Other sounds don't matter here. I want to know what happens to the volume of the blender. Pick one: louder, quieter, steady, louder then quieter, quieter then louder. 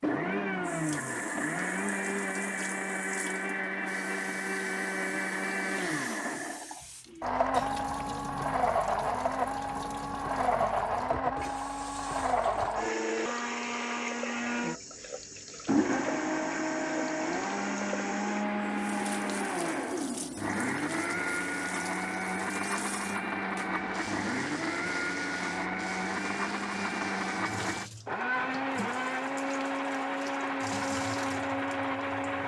steady.